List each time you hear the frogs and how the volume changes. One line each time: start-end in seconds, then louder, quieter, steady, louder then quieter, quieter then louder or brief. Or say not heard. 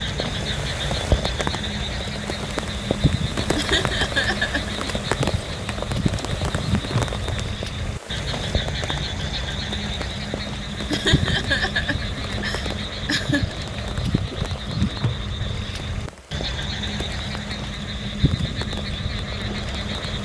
0.0-20.1 steady.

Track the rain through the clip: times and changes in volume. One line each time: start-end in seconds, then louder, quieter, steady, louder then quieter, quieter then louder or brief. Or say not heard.
0.0-20.1 quieter.